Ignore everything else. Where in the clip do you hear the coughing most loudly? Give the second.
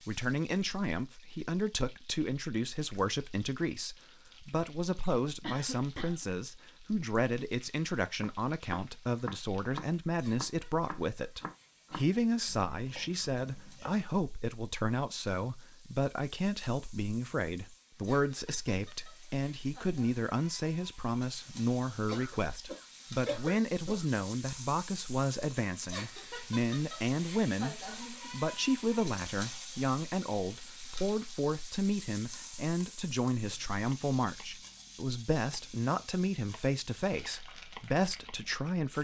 23 s.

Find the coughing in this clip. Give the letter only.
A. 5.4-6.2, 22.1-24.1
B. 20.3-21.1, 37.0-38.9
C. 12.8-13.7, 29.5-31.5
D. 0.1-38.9
A.